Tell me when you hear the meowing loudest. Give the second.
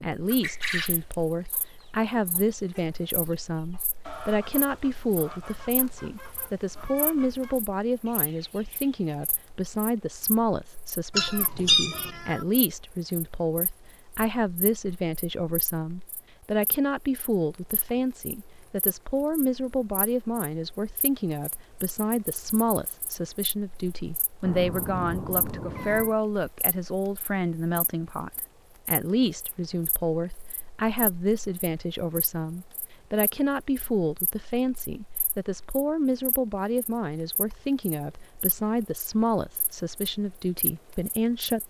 12 s.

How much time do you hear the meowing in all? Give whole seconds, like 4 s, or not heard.
3 s.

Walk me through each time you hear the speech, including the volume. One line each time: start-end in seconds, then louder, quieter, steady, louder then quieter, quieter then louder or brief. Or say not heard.
0.0-41.6 steady.